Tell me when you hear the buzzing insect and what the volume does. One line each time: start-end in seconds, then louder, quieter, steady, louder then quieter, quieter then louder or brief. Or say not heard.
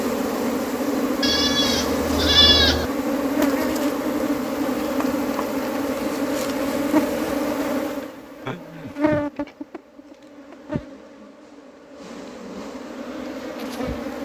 0.0-14.2 quieter.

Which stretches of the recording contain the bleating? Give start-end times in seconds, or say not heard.
1.2-2.9, 8.4-8.9.